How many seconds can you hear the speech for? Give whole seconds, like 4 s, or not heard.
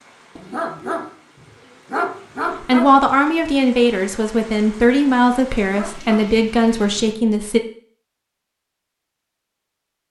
5 s.